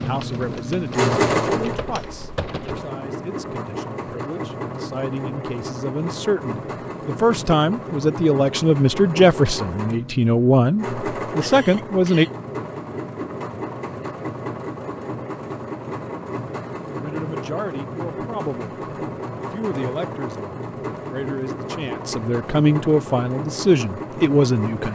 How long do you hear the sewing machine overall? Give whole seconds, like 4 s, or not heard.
25 s.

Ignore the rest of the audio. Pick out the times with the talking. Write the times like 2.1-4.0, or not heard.
0.0-12.2, 16.9-24.9.